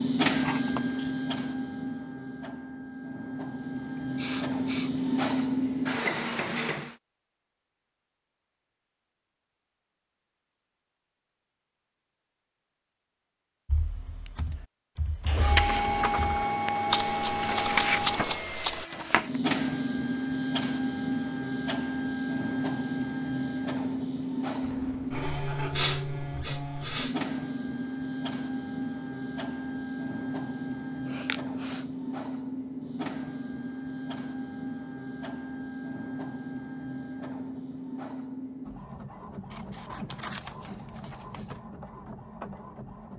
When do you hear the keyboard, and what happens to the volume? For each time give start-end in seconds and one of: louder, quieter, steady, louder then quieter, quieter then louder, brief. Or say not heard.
13.7-18.9 louder.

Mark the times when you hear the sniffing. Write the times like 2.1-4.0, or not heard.
3.6-5.0, 25.8-27.1, 31.1-31.8.